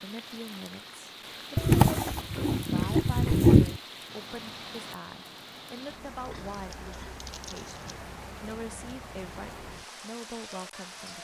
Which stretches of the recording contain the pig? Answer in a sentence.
The pig can be heard from 1.6 to 3.8 s and from 6.1 to 8.0 s.